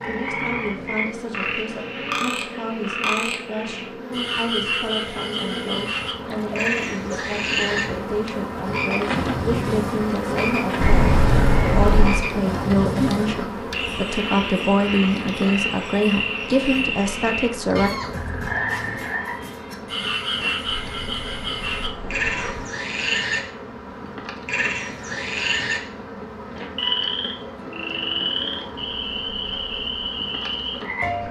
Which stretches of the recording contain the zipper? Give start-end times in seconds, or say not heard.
10.8-12.2, 20.6-22.6.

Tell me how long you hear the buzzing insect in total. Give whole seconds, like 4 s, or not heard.
31 s.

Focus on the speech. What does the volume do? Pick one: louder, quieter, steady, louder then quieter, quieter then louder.
louder.